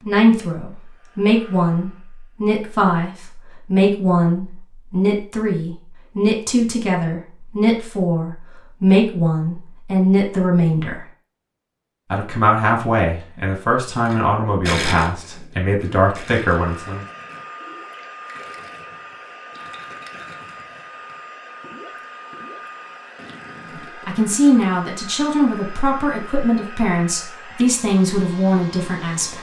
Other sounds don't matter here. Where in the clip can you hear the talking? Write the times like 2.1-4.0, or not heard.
0.1-11.0, 12.1-17.1, 24.1-29.3.